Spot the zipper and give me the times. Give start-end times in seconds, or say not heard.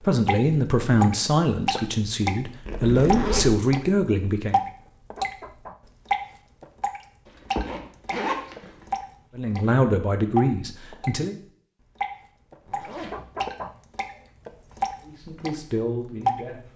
2.6-3.6, 7.2-8.7, 12.7-13.2.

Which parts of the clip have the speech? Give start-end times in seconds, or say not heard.
0.0-4.6, 9.3-11.3, 15.0-16.7.